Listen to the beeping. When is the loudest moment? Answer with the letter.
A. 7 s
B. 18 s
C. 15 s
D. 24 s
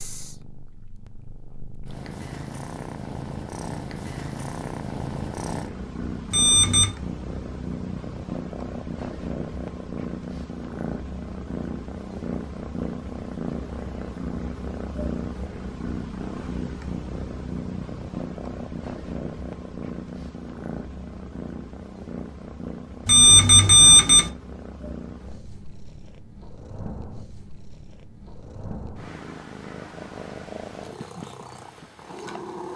D.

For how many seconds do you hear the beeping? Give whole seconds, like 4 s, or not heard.
2 s.